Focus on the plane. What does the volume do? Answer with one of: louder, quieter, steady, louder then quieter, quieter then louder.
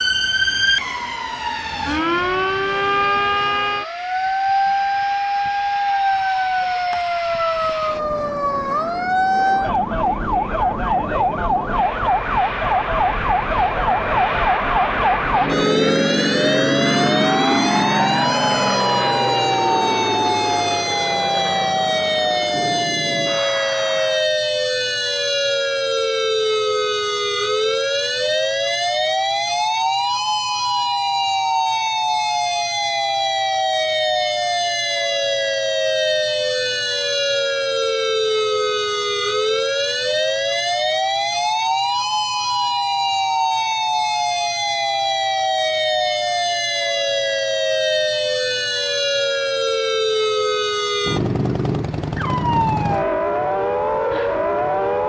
louder then quieter.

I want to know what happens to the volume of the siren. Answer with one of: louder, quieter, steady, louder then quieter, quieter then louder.
steady.